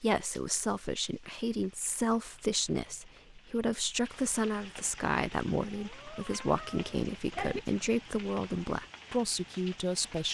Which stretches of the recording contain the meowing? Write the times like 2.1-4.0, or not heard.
5.6-7.6.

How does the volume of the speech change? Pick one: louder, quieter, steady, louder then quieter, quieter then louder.
steady.